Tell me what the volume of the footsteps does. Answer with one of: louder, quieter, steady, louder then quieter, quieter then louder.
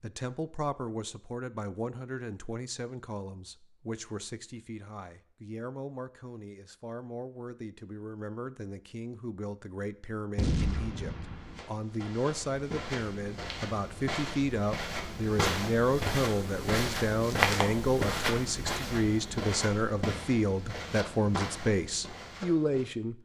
louder then quieter.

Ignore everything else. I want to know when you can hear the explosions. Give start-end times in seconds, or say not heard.
10.3-11.6.